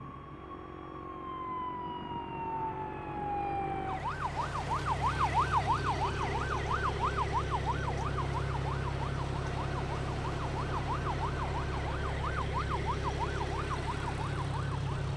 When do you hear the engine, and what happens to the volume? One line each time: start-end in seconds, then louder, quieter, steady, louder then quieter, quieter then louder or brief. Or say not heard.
0.0-15.1 louder.